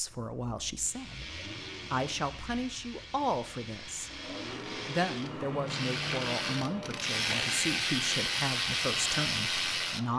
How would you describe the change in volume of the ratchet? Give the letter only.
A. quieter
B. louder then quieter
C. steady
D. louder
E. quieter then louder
D.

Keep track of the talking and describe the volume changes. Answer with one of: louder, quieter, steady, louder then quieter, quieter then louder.
steady.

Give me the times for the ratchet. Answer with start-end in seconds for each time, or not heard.
0.8-10.0.